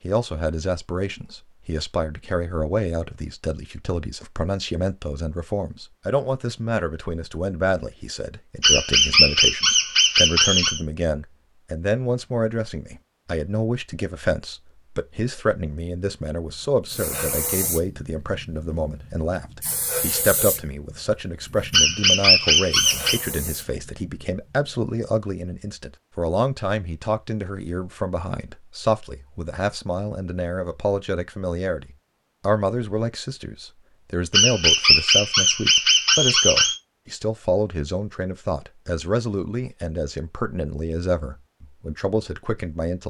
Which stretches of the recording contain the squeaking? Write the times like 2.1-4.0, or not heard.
8.6-10.8, 21.7-23.2, 34.3-36.8.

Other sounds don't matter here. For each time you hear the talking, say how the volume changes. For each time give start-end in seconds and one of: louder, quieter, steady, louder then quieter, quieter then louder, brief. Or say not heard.
0.0-43.0 steady.